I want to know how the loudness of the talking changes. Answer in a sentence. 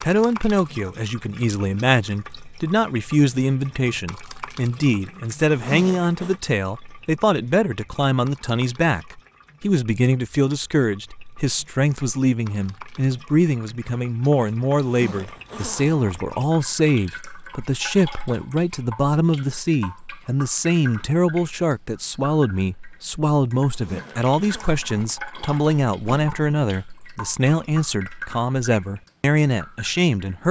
The loudness of the talking stays about the same.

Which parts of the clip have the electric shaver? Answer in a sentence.
You can't hear the electric shaver here.